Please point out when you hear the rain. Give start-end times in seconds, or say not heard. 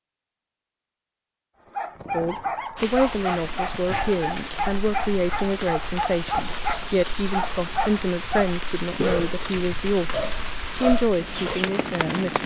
2.8-12.4.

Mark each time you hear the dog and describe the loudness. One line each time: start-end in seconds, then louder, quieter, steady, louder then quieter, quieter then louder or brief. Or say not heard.
1.6-11.7 steady.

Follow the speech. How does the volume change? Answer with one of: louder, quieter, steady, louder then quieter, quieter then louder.
steady.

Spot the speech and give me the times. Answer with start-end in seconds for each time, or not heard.
2.1-12.4.